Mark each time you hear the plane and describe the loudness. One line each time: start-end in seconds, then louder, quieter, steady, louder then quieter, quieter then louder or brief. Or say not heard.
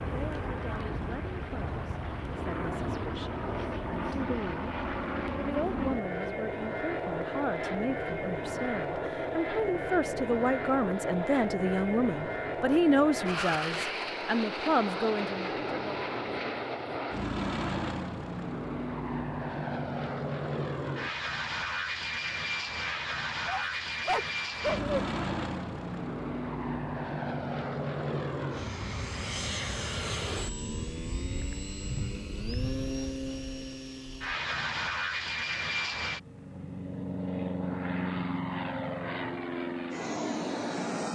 0.0-41.0 steady.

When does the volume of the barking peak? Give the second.
25 s.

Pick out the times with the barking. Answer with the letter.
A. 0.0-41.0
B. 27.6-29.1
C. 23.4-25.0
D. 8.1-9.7
C.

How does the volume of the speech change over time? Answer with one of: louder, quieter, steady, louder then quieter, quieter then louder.
louder.